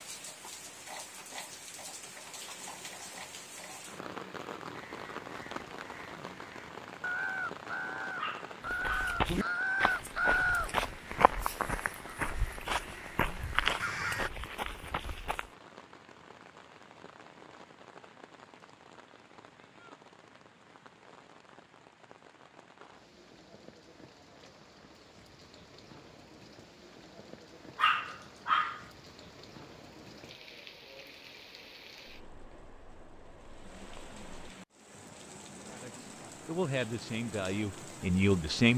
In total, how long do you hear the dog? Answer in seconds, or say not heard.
2 s.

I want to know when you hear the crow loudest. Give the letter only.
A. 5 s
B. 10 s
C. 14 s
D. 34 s
B.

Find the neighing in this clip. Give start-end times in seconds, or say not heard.
not heard.